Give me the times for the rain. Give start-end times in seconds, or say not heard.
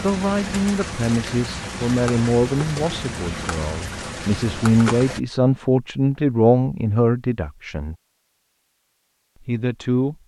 0.0-5.2.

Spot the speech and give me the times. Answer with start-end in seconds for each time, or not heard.
0.0-8.0, 9.4-10.2.